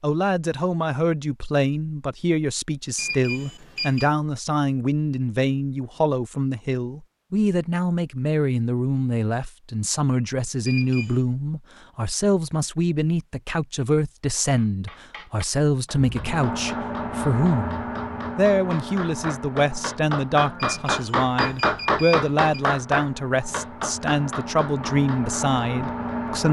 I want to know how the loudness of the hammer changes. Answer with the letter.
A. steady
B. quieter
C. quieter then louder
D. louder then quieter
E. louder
D.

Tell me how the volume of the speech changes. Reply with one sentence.
The loudness of the speech stays about the same.